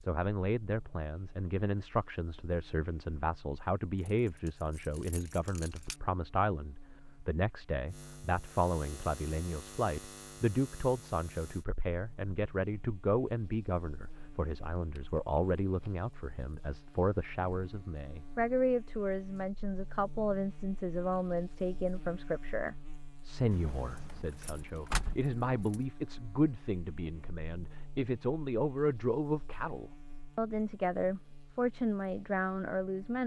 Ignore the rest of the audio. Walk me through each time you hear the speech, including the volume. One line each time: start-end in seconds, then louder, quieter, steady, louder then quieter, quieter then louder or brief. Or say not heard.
0.0-33.2 steady.